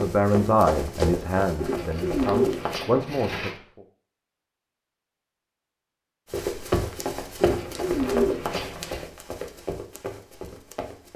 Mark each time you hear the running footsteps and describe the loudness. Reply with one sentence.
You can hear the running footsteps briefly from 0.0 to 2.8 s; and from 6.3 to 11.1 s, getting quieter.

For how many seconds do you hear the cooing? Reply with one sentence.
The cooing can be heard for 4 seconds in total.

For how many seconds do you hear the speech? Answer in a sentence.
You can hear the speech for 4 seconds altogether.